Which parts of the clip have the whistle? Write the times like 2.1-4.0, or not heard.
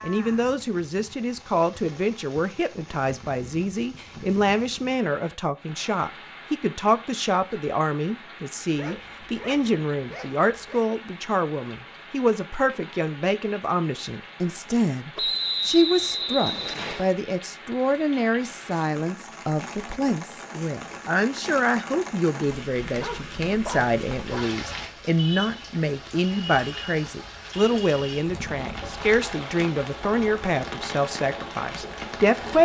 15.2-17.1.